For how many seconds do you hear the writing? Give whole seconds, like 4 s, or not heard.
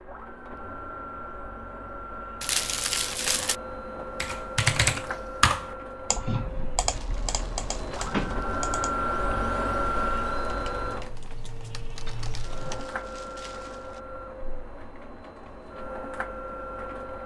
not heard.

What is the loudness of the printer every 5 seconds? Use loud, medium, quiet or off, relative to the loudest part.
medium, loud, loud, medium.